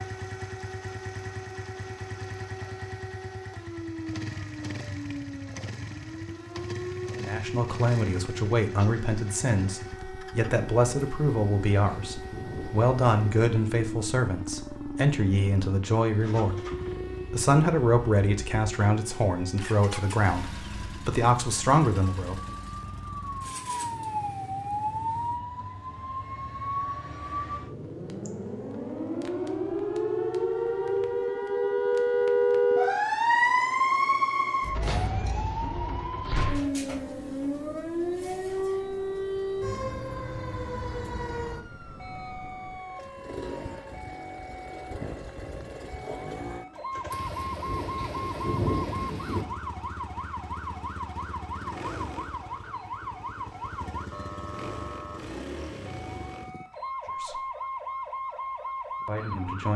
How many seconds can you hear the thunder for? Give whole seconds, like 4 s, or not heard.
5 s.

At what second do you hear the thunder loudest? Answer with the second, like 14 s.
49 s.